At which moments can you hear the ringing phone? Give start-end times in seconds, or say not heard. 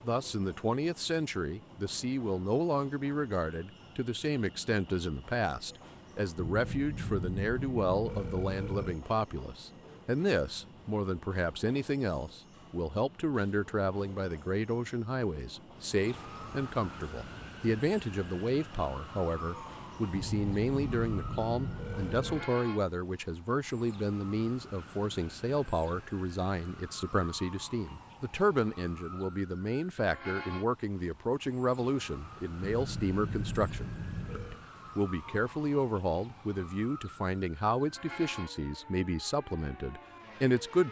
6.3-9.0, 20.1-22.5, 32.6-34.6.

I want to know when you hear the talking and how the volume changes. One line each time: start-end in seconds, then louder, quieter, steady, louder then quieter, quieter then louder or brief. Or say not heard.
0.0-40.8 steady.